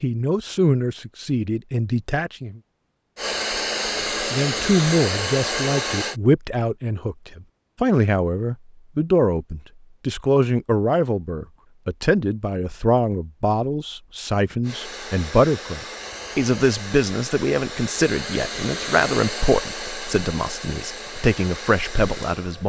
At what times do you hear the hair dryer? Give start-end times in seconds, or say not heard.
3.1-6.2, 14.6-22.6.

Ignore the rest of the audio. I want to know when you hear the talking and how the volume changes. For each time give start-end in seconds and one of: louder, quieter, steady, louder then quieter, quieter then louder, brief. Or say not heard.
0.0-2.6 brief
4.3-22.6 steady.